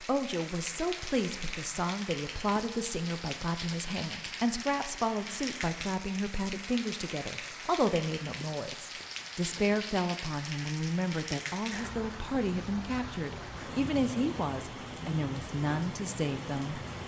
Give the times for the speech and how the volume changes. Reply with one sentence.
You can hear the speech from 0.0 to 16.8 s, at a steady volume.